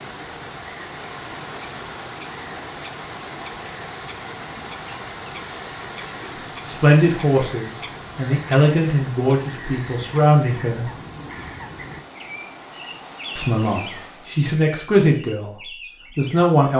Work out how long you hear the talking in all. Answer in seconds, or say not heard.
7 s.